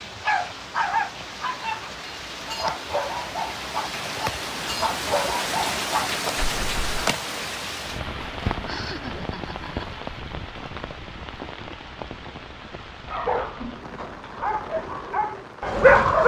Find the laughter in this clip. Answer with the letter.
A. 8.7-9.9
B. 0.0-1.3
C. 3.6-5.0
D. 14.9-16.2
A.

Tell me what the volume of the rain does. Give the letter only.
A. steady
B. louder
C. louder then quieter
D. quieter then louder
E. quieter
C.